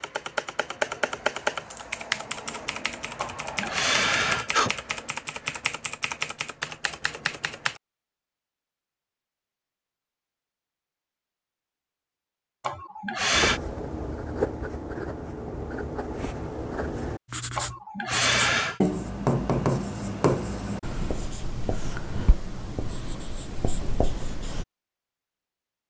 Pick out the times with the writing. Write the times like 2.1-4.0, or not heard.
13.3-24.6.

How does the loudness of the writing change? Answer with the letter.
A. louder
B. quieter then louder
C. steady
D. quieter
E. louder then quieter
E.